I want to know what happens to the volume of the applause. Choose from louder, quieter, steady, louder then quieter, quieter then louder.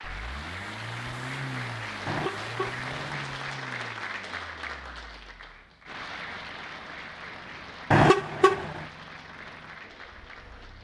quieter.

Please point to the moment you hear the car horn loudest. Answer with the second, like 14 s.
8 s.